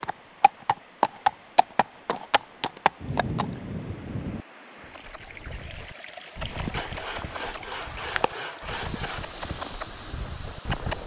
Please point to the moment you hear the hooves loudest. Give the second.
1 s.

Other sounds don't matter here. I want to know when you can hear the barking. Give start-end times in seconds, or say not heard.
not heard.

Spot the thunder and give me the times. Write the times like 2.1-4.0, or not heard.
3.0-4.5.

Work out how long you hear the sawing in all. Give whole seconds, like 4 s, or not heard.
3 s.